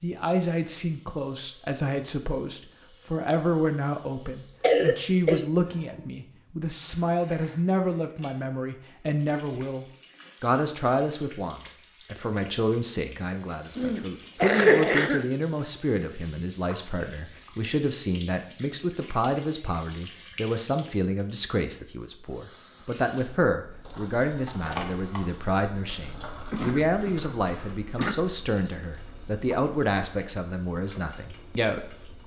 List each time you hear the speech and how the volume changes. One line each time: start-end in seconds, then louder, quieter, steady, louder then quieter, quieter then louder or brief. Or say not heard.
0.0-32.2 steady.